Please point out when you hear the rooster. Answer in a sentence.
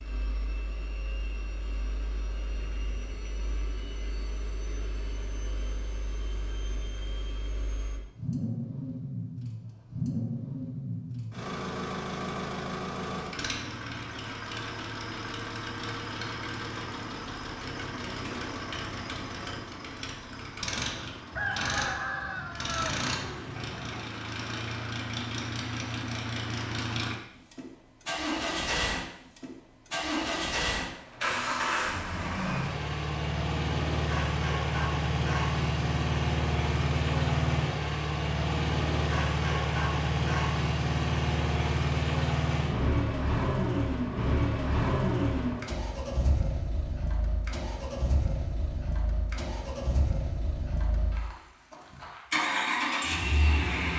The rooster can be heard from 21.3 to 24.1 s.